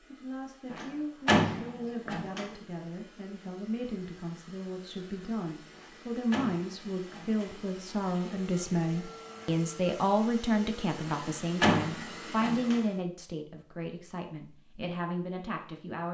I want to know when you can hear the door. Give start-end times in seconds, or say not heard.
0.7-2.5, 5.8-7.5, 11.1-12.8.